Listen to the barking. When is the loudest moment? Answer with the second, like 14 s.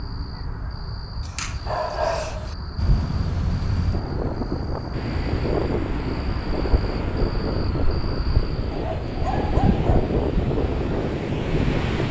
2 s.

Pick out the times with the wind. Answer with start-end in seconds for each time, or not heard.
2.8-12.0.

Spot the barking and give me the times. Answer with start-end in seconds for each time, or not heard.
1.2-2.5, 8.7-9.9.